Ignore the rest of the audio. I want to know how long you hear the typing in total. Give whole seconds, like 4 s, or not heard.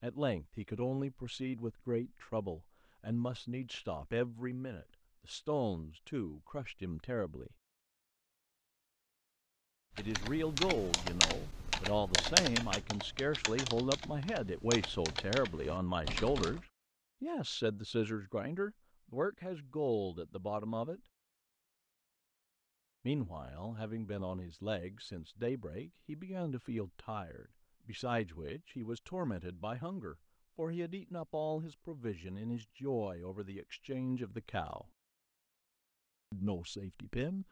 7 s.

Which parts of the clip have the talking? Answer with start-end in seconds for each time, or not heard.
0.0-7.5, 9.9-21.0, 23.1-34.9, 36.3-37.4.